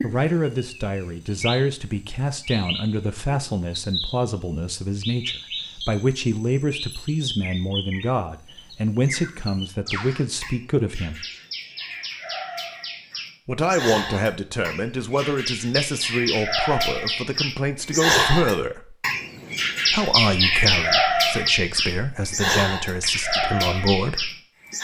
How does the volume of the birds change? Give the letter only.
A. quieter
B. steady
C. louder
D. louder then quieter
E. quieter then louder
C.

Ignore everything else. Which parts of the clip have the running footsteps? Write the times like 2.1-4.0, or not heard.
not heard.